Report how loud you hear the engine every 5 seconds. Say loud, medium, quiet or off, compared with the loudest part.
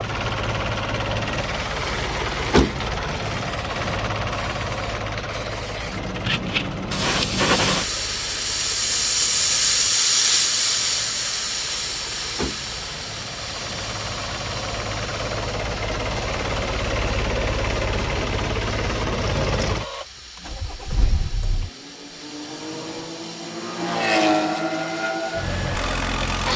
loud, medium, medium, loud, loud, loud.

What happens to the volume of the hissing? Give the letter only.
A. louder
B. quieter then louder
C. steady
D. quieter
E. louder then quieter
E.